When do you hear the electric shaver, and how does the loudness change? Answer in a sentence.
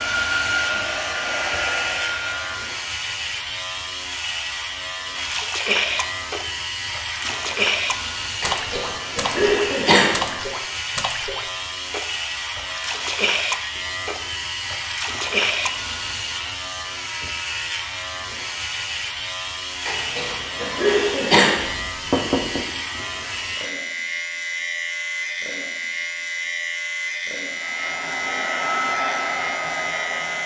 You can hear the electric shaver from 0.0 to 30.4 s, at a steady volume.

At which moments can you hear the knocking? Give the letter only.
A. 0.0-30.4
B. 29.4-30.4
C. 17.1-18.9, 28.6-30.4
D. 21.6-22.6
D.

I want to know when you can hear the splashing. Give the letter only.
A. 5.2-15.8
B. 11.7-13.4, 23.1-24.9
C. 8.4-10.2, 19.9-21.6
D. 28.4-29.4
A.